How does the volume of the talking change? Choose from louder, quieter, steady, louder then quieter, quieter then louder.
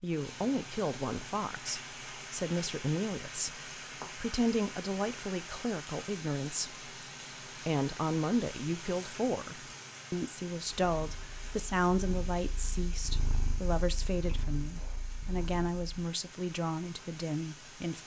steady.